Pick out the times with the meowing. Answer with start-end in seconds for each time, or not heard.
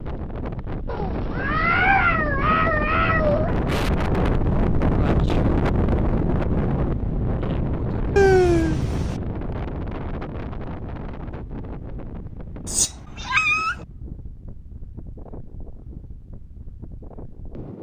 0.8-3.5, 8.2-9.2, 12.7-13.8.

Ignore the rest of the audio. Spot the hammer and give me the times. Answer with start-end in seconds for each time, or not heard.
not heard.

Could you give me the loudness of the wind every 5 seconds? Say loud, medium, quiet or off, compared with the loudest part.
loud, loud, quiet, quiet.